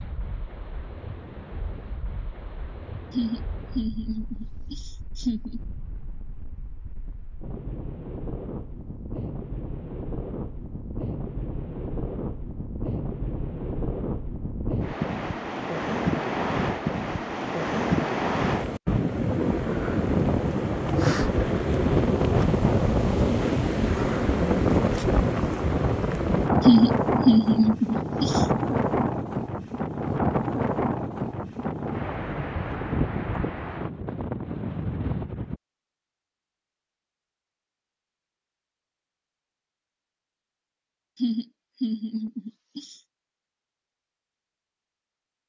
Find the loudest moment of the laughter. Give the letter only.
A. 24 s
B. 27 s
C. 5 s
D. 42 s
B.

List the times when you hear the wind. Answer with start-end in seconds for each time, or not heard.
0.0-35.6.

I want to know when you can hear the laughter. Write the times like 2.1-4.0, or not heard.
3.1-5.6, 26.6-28.4, 41.1-43.0.